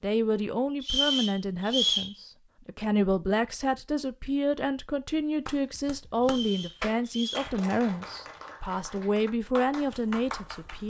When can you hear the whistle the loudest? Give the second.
2 s.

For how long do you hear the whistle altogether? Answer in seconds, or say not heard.
3 s.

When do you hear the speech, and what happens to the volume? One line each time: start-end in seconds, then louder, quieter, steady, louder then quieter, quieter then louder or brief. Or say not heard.
0.0-10.8 steady.